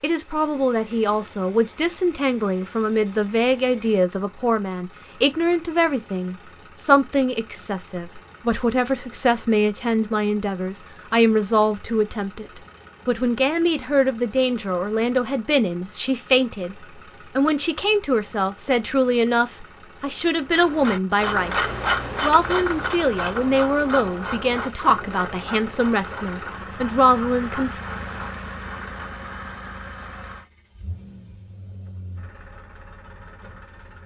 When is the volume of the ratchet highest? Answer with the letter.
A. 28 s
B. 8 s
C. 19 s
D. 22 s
D.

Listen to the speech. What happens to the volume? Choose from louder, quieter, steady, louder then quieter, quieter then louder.
steady.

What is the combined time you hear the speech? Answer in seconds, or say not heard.
27 s.